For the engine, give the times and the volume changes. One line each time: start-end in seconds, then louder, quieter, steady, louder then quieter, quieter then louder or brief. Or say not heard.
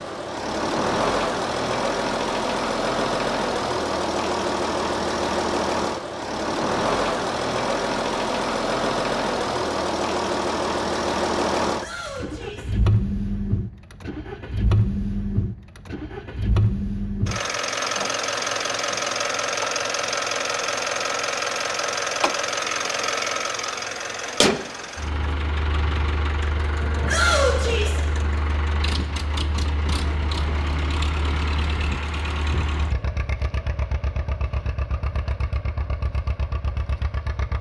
0.0-37.5 quieter.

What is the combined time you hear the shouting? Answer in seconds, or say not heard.
2 s.